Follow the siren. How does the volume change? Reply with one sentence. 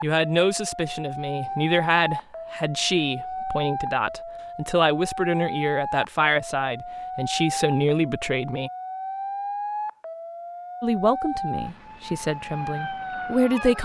The volume of the siren stays about the same.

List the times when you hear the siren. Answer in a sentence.
You can hear the siren from 0.0 to 13.8 s.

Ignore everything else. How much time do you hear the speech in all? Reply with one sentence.
You can hear the speech for 12 seconds altogether.